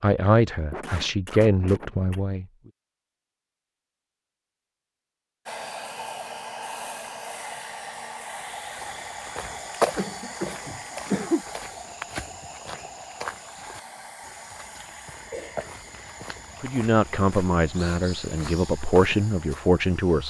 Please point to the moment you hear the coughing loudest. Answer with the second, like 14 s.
11 s.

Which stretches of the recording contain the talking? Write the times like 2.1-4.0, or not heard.
0.0-2.5, 16.6-20.2.